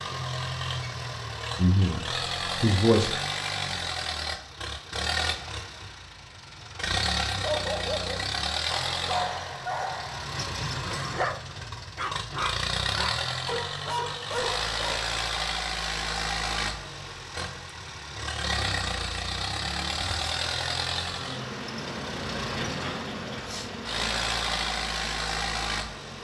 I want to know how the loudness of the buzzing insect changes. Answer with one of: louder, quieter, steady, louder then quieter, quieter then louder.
louder then quieter.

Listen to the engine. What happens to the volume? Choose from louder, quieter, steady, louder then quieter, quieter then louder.
steady.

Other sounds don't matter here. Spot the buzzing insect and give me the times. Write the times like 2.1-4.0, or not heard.
19.8-26.2.